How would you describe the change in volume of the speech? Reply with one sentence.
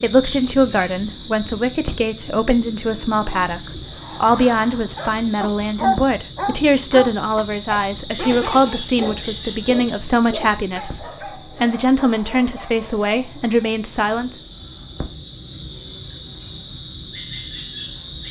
The volume of the speech stays about the same.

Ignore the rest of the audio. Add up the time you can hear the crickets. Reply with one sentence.
You can hear the crickets for 18 seconds altogether.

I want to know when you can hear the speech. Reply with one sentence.
The speech can be heard from 0.0 to 14.3 s.